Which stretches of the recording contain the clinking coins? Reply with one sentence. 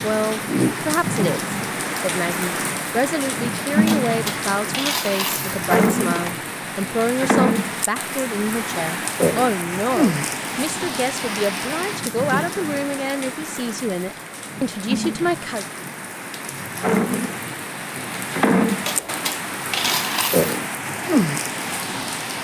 You can hear the clinking coins from 3.9 to 6.3 s and from 18.9 to 20.6 s.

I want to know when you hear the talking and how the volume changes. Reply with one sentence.
You can hear the talking from 0.0 to 15.7 s, at a steady volume.